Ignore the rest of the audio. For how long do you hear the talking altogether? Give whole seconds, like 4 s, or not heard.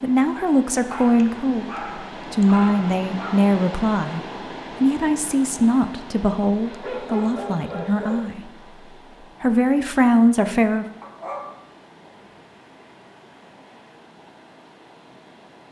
9 s.